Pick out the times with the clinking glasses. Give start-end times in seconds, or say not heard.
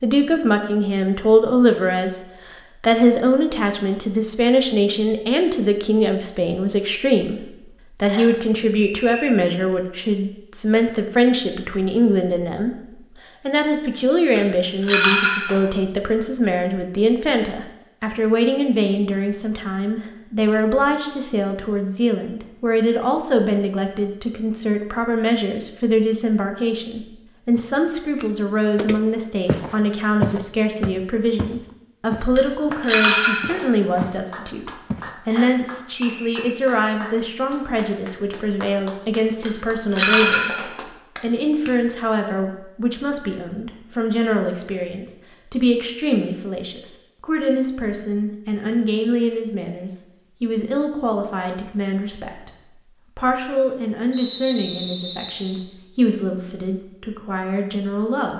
14.3-15.6, 32.4-33.6, 39.5-40.7.